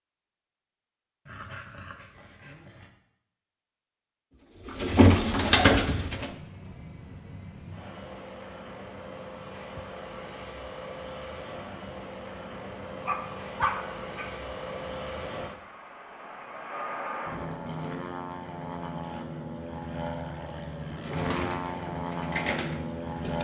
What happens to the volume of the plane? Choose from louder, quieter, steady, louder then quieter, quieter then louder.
louder.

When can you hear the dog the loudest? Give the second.
14 s.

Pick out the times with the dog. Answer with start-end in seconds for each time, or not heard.
1.2-2.9, 13.1-14.3.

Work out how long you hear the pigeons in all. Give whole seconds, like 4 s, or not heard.
4 s.